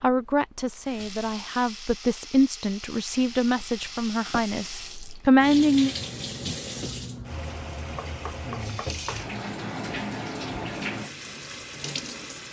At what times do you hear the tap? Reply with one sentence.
The tap can be heard from 0.1 to 12.4 s.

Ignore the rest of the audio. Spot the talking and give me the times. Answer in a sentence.
You can hear the talking from 0.0 to 6.0 s.